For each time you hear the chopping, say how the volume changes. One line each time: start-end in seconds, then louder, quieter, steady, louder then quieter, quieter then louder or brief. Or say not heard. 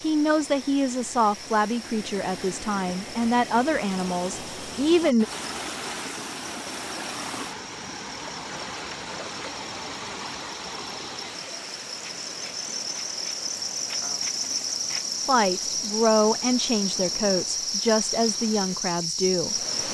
not heard.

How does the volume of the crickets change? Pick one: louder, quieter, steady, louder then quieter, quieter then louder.
louder.